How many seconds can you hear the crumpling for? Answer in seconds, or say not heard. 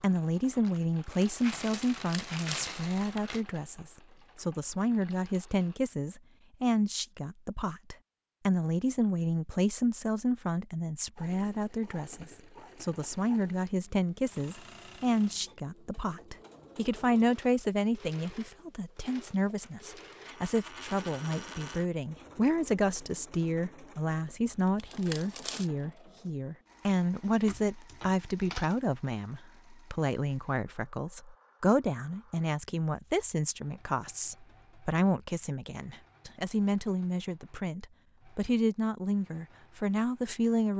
2 s.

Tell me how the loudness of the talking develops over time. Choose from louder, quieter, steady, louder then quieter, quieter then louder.
steady.